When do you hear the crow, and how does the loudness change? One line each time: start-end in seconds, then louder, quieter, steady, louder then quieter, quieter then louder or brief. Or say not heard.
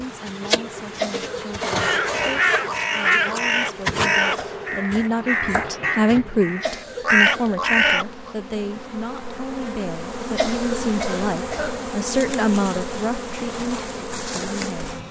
1.8-8.3 quieter then louder.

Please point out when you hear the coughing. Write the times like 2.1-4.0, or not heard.
0.9-2.5, 6.6-8.1, 10.3-11.8.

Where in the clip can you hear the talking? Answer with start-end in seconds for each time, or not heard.
0.0-15.0.